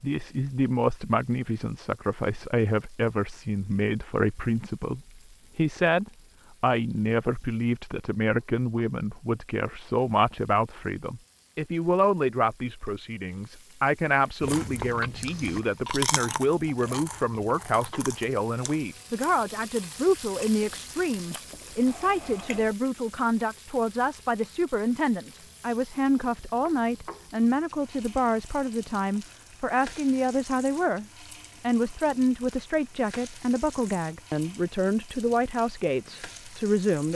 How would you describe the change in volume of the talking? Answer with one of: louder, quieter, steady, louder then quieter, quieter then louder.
steady.